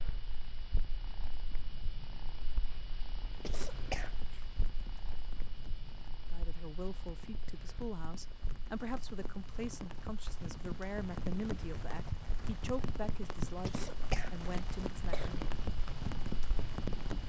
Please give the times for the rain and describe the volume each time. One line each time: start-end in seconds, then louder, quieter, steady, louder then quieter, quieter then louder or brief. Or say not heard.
3.2-17.2 louder.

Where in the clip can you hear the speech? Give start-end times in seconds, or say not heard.
6.3-15.3.